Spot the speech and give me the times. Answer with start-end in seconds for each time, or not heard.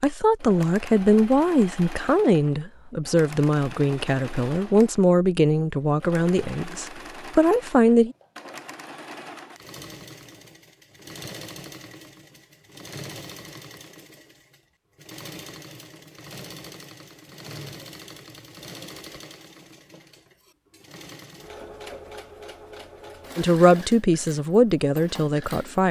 0.0-8.2, 23.4-25.8.